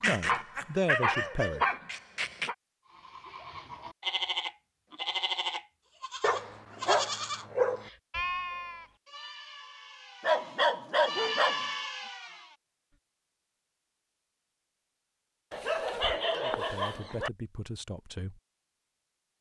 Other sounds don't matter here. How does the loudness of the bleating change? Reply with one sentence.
The loudness of the bleating goes down, then up.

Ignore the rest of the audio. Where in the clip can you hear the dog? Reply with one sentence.
You can hear the dog from 0.0 to 2.5 s, from 6.2 to 7.9 s, from 10.2 to 11.7 s and from 15.5 to 17.3 s.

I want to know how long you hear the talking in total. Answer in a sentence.
The talking can be heard for 4 seconds in total.